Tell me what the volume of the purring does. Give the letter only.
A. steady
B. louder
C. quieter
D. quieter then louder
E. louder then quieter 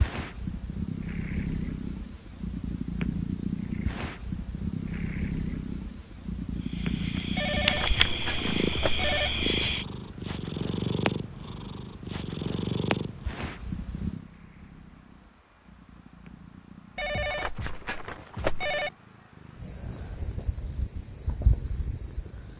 C.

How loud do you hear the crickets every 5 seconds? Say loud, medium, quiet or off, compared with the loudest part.
off, loud, quiet, quiet, medium.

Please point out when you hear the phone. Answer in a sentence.
You can hear the phone from 7.3 to 9.3 s and from 16.9 to 18.9 s.